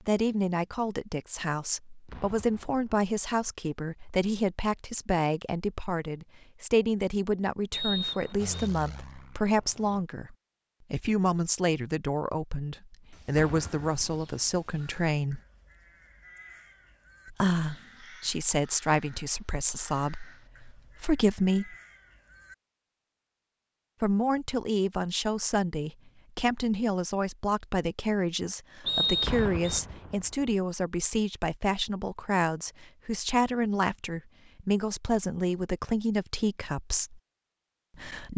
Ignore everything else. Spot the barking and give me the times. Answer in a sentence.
You can't hear the barking here.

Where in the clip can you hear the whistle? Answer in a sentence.
You can hear the whistle from 7.7 to 8.7 s and from 28.9 to 29.8 s.